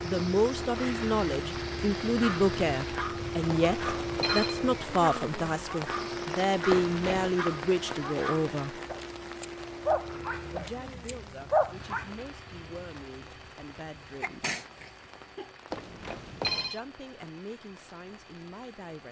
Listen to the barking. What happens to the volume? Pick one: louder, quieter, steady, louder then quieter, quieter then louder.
louder.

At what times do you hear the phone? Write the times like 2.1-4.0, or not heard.
3.5-4.6, 6.7-7.3, 15.7-16.8.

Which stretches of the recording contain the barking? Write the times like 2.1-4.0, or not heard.
2.2-12.1.